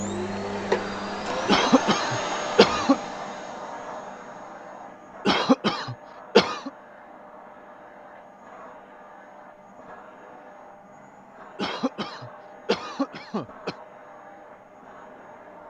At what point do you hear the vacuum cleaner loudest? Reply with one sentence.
The loudest moment of the vacuum cleaner is at 1 second.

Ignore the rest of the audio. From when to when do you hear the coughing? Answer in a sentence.
You can hear the coughing from 1.4 to 3.0 s, from 5.2 to 6.7 s and from 11.6 to 13.8 s.